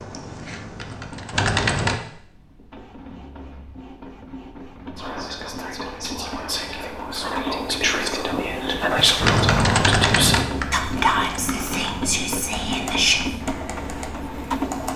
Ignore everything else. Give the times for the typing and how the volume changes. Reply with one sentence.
You can hear the typing briefly from 0.0 to 2.0 s; and from 9.2 to 14.9 s, getting quieter.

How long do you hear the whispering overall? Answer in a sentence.
The whispering can be heard for 8 seconds in total.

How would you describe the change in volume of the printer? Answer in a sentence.
The loudness of the printer goes up.